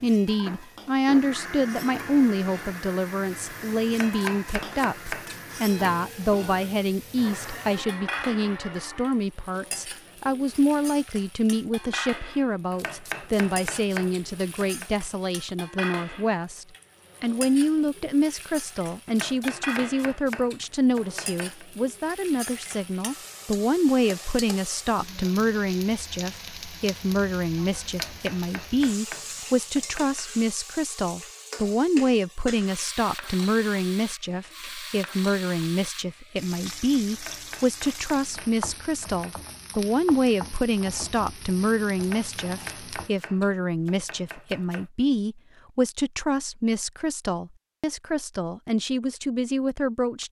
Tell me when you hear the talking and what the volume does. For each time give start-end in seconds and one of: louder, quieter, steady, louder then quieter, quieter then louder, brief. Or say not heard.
0.0-50.2 steady.